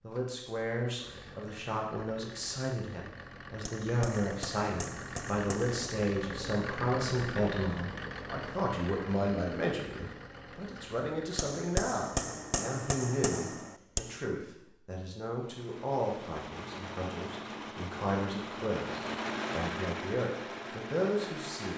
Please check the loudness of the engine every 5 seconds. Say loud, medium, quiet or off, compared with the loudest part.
medium, loud, medium, loud, loud.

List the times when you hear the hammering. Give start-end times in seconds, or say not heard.
3.6-5.8, 11.3-14.2.